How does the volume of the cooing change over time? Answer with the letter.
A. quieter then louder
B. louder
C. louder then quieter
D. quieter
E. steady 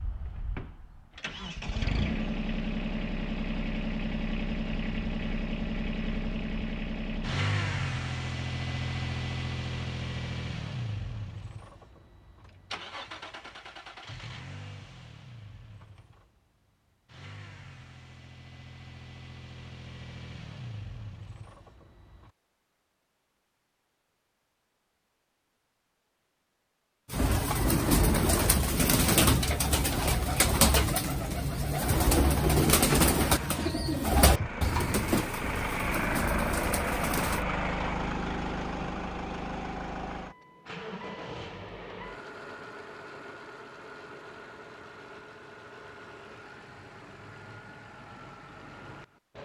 D.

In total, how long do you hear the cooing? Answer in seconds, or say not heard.
10 s.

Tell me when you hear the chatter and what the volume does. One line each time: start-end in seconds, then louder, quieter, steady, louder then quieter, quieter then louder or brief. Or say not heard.
not heard.